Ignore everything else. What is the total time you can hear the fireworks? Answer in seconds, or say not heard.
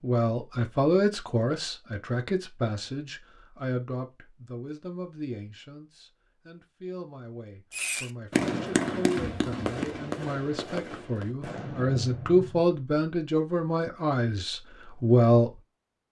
5 s.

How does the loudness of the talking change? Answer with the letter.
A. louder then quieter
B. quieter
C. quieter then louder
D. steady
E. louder
C.